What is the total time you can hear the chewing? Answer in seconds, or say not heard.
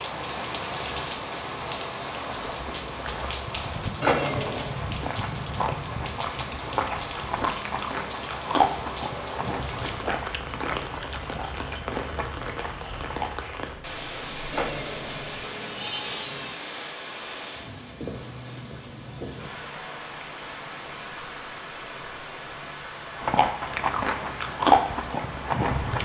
14 s.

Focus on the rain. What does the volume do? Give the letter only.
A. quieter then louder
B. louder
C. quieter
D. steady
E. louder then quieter
C.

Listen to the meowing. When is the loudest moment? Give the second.
4 s.